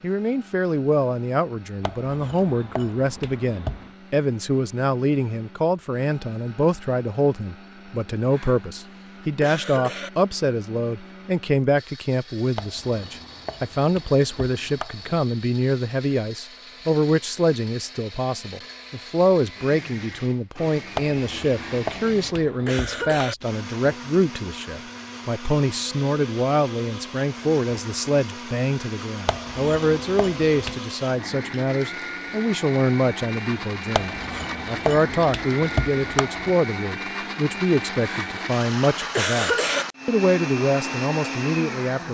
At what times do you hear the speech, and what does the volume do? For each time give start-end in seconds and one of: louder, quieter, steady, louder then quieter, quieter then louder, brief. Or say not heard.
0.0-42.0 steady.